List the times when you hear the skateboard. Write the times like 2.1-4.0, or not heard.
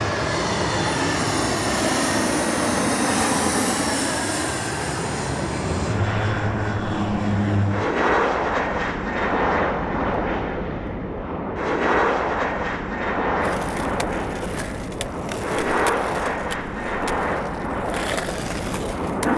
13.4-19.3.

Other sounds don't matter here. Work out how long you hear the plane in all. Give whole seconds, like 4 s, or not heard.
19 s.